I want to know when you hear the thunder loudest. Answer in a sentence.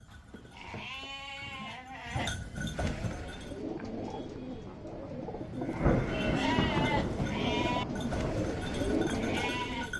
The loudest moment of the thunder is at 6 seconds.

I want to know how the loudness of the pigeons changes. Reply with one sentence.
The volume of the pigeons goes up.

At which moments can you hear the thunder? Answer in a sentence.
You can hear the thunder from 5.8 to 8.4 s.